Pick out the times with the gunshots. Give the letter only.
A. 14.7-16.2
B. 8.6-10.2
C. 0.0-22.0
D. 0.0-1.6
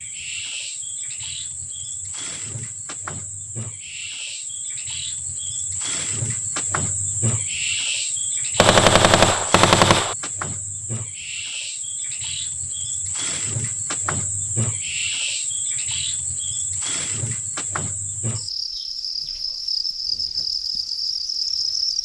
B.